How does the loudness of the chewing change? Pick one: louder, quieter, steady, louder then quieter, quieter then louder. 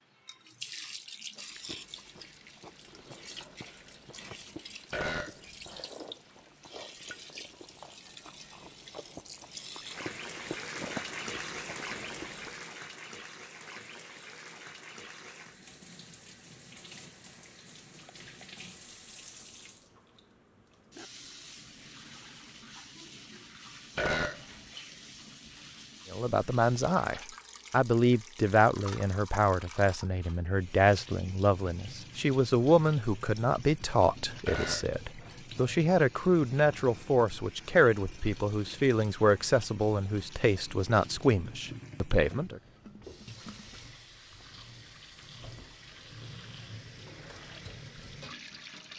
louder.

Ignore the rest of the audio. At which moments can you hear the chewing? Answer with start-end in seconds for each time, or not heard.
1.4-12.6.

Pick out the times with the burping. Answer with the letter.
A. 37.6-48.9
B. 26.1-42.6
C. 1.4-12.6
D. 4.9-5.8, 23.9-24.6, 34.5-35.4
D.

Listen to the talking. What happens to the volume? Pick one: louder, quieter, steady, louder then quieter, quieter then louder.
steady.